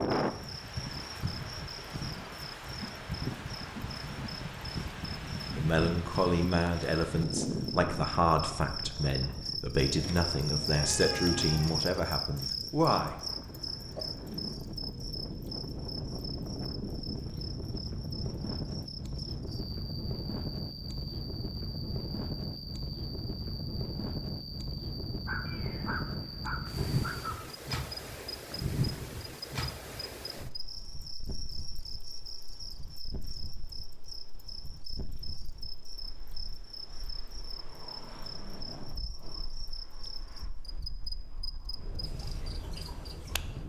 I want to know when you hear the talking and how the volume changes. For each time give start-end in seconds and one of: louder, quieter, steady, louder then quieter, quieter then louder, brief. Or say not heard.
5.5-13.2 steady.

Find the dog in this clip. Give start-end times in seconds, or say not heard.
13.3-14.6, 25.2-27.4.